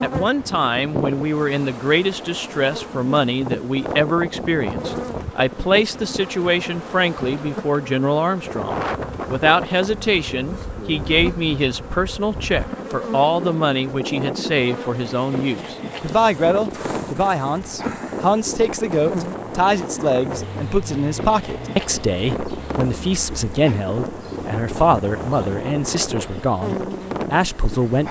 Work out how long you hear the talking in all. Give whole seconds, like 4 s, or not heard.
28 s.